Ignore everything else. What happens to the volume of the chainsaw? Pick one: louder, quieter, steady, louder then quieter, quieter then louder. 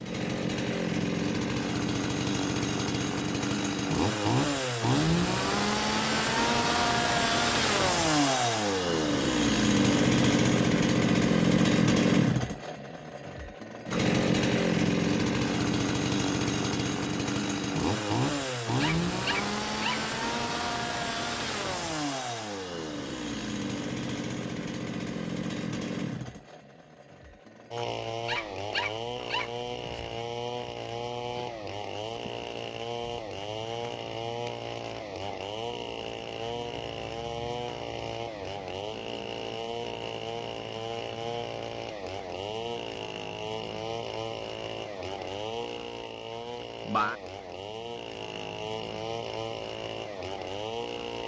quieter.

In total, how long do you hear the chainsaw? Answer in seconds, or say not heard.
51 s.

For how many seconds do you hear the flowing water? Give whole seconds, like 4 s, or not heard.
not heard.